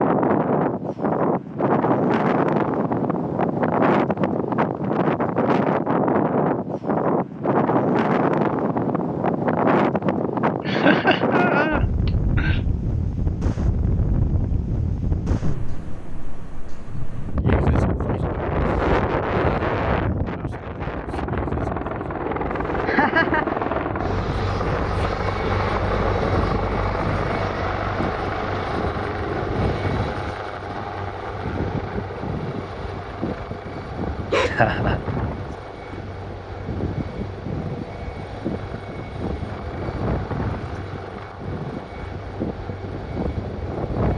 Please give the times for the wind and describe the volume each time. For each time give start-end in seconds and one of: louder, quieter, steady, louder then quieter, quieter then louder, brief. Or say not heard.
0.0-44.1 quieter.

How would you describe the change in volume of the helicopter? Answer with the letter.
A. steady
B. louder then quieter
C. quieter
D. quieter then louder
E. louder
C.